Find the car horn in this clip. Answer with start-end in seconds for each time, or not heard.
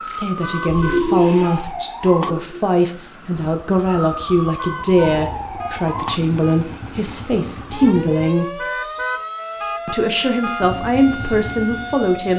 0.4-1.6, 4.5-6.7, 8.6-10.7.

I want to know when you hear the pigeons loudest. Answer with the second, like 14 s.
1 s.